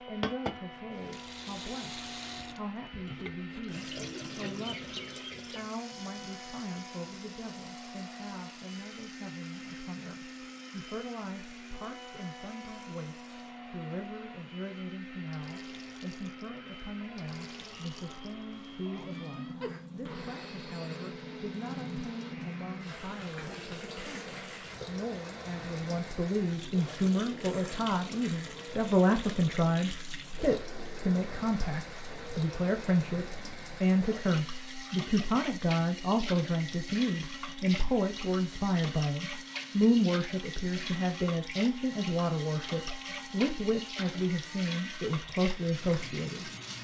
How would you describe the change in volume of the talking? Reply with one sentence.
The loudness of the talking goes up.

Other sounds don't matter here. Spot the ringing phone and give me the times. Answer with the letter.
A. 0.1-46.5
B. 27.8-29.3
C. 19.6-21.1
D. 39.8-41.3
C.